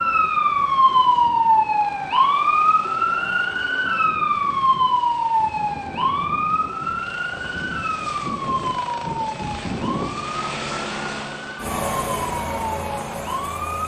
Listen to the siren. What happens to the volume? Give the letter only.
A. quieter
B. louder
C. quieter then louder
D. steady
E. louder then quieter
A.